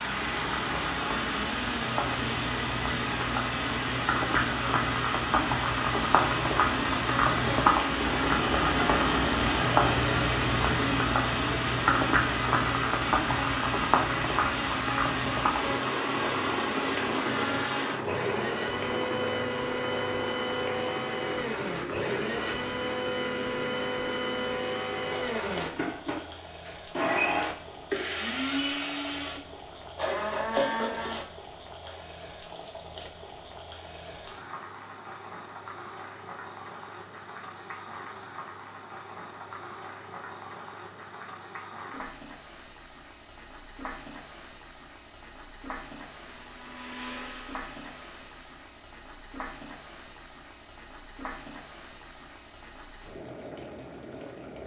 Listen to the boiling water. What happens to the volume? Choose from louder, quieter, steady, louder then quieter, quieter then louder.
quieter.